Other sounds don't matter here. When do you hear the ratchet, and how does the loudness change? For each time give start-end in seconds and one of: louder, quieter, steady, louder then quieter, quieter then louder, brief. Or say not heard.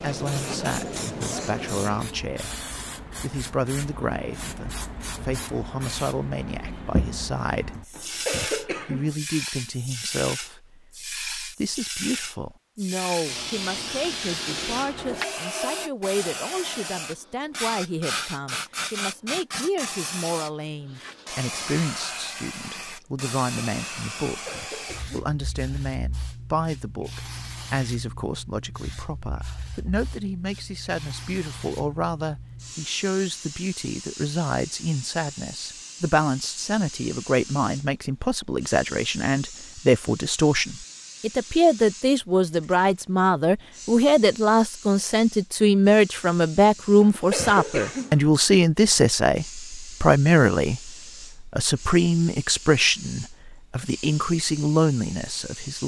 not heard.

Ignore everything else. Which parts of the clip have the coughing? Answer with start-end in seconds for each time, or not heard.
8.0-9.2, 24.3-25.2, 47.0-48.2.